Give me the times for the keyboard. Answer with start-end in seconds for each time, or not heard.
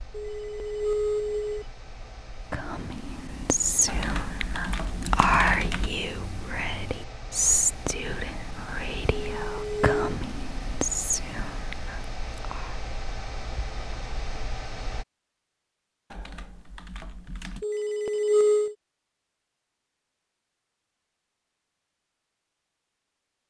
3.9-5.9, 16.1-17.6.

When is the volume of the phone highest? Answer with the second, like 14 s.
18 s.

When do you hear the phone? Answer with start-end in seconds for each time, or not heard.
0.1-1.6, 9.3-10.2, 17.6-18.8.